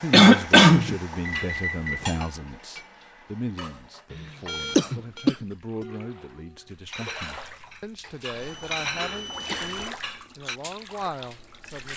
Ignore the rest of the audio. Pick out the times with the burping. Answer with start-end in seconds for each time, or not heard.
not heard.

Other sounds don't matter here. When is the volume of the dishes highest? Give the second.
9 s.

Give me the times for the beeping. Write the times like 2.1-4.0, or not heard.
1.2-2.2, 4.5-5.3, 8.3-9.9.